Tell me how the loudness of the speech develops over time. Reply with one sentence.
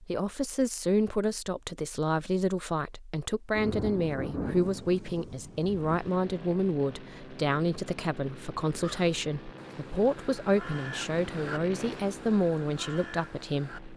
The volume of the speech stays about the same.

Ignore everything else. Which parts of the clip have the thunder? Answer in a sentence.
The thunder can be heard from 3.5 to 6.1 s.